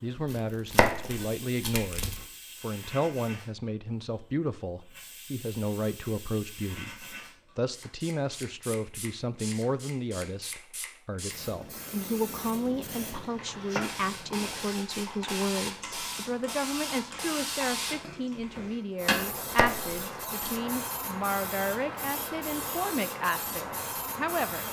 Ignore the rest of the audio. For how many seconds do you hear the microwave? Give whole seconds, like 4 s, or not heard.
not heard.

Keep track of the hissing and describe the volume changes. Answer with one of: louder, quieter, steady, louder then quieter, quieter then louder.
louder.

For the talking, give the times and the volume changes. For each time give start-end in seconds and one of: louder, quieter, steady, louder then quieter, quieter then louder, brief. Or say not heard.
0.0-24.6 steady.